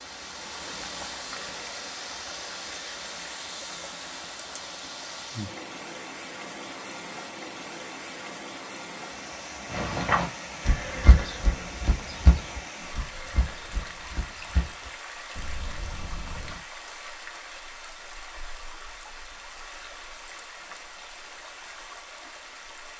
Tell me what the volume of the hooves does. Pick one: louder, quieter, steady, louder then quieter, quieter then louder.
quieter.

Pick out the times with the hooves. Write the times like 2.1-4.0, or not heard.
9.7-16.6.